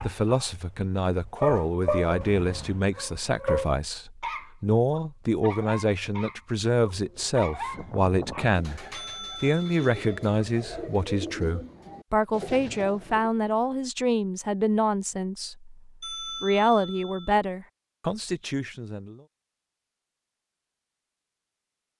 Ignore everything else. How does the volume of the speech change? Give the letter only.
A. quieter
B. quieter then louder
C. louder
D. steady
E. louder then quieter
D.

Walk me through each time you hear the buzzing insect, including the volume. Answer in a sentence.
The buzzing insect can't be heard in this clip.